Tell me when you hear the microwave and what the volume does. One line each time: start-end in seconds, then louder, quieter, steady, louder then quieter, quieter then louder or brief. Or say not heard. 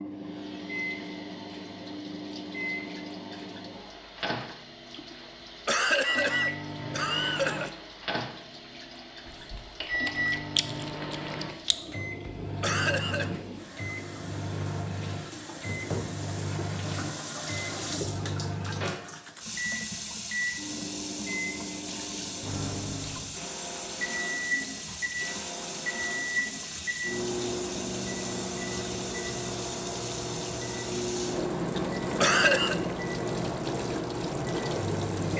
0.0-35.3 steady.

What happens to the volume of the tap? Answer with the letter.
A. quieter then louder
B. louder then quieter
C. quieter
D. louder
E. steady
D.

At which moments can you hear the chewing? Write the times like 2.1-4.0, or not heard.
9.2-11.8.